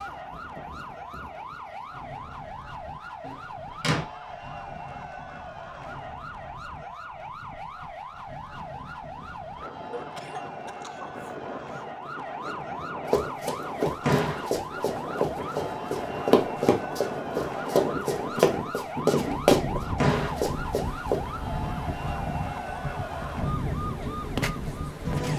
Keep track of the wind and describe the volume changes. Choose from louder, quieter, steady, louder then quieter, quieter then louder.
louder.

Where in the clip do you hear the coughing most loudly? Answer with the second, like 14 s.
10 s.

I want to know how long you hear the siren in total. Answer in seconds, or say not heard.
25 s.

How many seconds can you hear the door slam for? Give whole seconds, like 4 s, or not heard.
2 s.